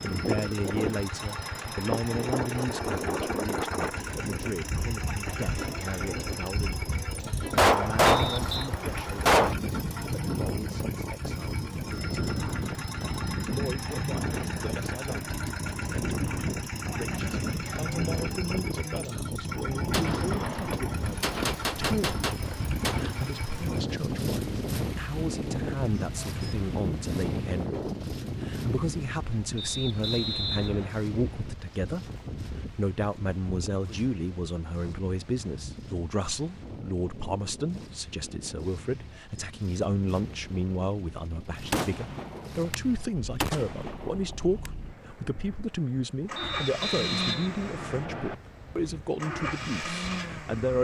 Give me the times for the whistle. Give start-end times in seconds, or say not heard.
8.1-8.7, 29.6-30.9, 46.4-48.4.